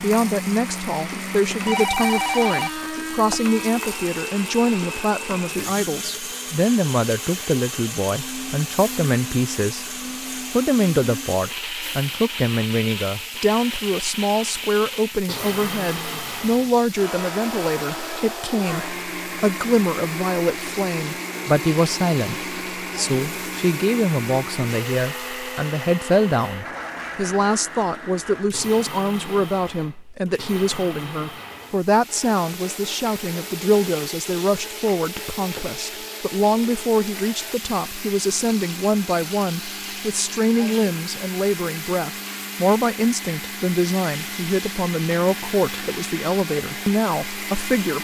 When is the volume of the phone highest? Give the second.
2 s.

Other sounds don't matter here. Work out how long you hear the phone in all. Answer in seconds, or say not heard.
2 s.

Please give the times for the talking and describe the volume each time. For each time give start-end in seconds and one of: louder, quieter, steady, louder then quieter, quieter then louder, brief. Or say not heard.
0.0-9.8 steady
10.5-47.9 steady.